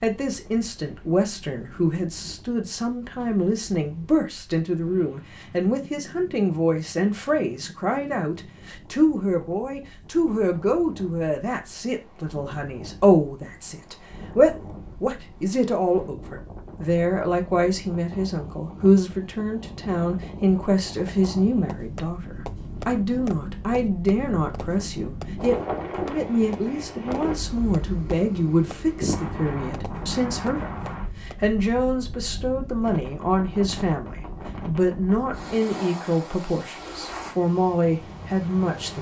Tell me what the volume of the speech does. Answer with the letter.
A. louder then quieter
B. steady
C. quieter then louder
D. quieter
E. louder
B.